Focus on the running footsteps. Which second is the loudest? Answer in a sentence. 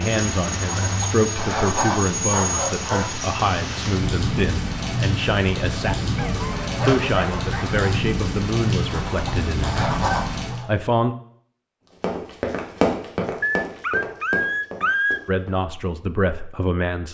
The volume of the running footsteps peaks at 13 seconds.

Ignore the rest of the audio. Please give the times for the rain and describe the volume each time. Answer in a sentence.
You can hear the rain from 0.0 to 10.7 s, at a steady volume.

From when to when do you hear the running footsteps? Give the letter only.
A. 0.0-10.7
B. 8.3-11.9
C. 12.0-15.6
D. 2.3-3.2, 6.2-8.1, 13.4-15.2
C.